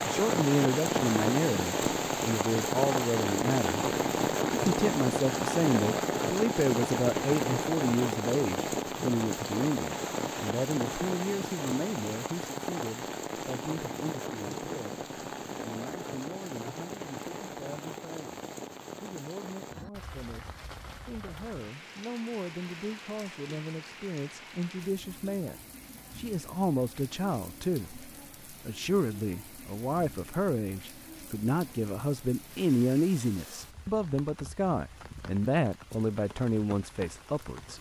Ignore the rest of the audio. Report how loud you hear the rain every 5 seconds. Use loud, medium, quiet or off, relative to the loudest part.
loud, loud, medium, medium, quiet, quiet, quiet, quiet.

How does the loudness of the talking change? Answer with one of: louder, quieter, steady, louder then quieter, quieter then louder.
quieter then louder.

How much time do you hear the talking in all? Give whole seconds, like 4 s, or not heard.
37 s.